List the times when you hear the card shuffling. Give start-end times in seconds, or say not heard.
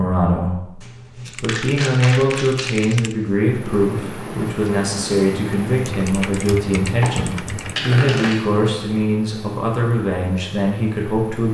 0.8-3.3, 7.0-8.8.